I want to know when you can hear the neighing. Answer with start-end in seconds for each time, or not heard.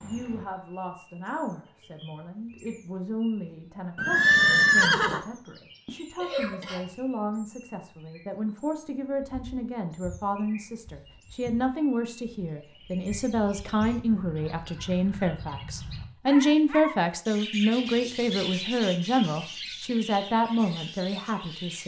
4.0-5.2.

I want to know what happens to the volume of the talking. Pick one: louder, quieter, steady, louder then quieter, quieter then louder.
louder.